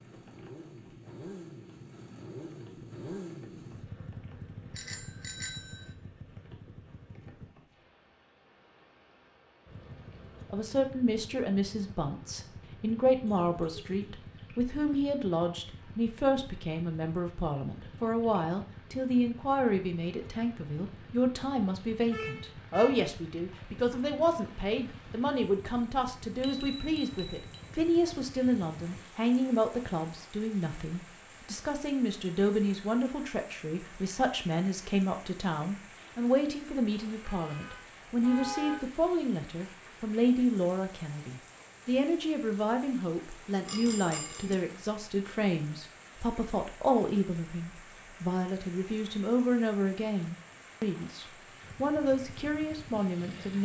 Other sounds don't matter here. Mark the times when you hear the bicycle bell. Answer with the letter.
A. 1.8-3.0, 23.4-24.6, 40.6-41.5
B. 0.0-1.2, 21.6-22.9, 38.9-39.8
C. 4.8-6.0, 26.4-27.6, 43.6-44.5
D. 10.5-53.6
C.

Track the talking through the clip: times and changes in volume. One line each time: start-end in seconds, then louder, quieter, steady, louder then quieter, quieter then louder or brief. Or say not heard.
10.5-53.6 steady.